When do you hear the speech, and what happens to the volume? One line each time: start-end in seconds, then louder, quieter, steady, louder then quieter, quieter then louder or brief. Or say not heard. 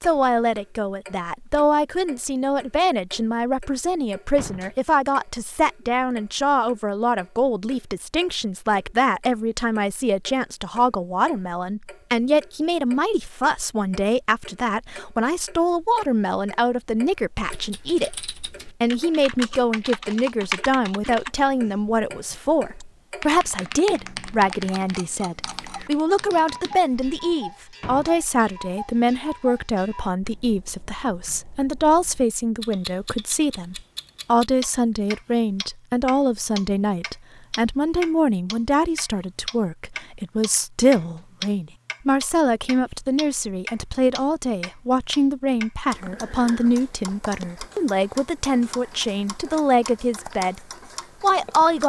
0.0-50.6 steady
51.2-51.8 brief.